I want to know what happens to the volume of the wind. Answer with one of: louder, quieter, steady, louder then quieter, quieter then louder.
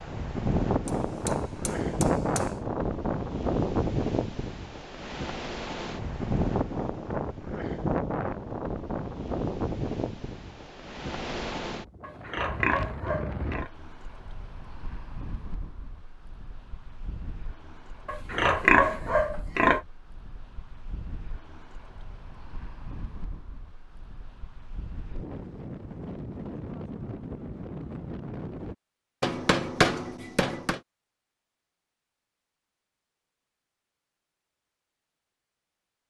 quieter then louder.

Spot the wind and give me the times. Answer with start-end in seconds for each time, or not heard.
0.0-28.8.